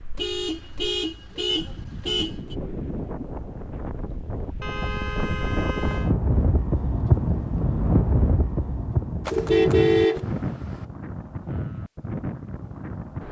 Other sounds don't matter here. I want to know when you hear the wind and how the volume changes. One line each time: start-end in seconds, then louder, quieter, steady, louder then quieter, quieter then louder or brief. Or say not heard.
0.0-13.2 louder then quieter.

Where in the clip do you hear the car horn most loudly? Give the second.
10 s.